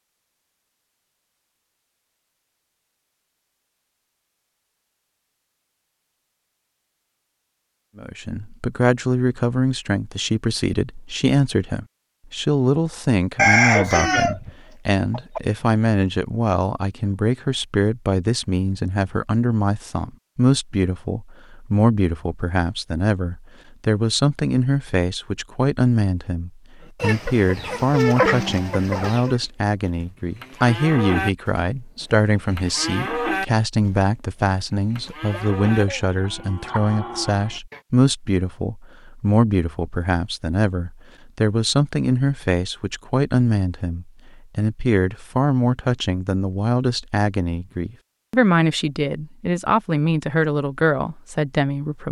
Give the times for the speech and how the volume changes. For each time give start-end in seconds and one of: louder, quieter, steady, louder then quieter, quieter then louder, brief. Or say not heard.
8.0-52.0 steady.